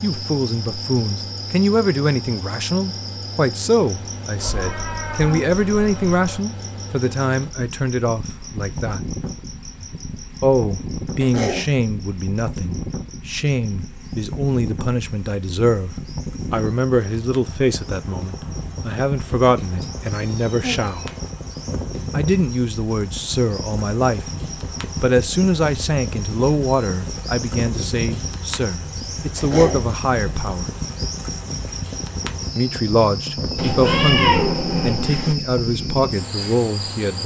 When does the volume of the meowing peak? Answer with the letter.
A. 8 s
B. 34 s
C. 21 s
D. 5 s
B.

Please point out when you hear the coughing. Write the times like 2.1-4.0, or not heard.
11.2-11.7, 29.4-29.9.